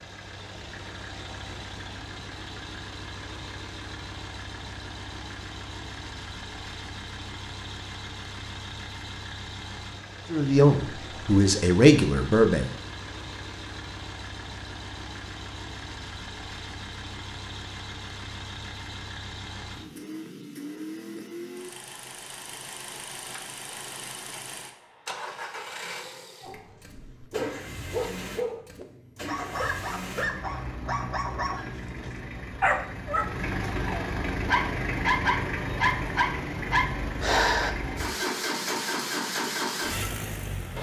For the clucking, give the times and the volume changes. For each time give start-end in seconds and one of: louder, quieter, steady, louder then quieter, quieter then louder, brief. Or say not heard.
not heard.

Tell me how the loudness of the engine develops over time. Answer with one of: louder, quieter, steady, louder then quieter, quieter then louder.
louder.